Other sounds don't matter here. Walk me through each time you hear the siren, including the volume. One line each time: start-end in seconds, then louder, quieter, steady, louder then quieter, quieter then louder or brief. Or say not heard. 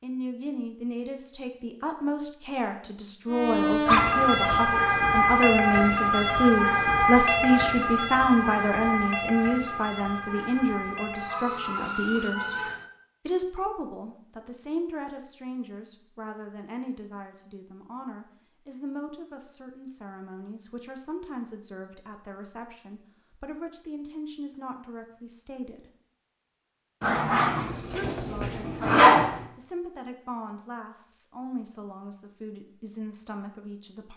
3.3-12.8 quieter.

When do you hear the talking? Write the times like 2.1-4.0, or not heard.
0.0-12.6, 13.2-25.9, 27.6-34.1.